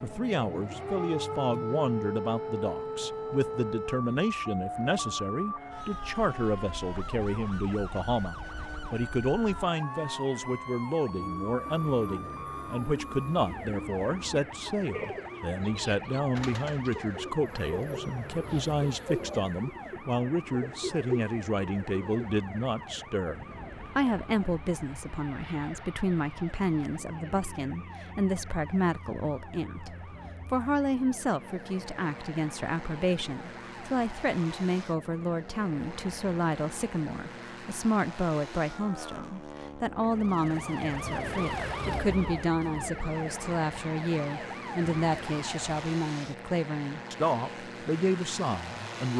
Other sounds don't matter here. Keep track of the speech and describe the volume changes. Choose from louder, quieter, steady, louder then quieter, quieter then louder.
steady.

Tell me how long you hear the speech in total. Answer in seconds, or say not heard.
49 s.